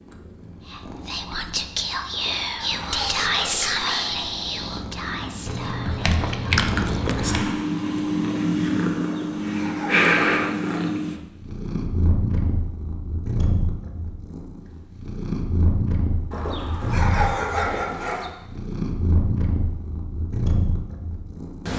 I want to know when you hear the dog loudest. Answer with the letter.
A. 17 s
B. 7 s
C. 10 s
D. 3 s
A.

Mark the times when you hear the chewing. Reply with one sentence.
You can hear the chewing from 5.5 to 7.5 s.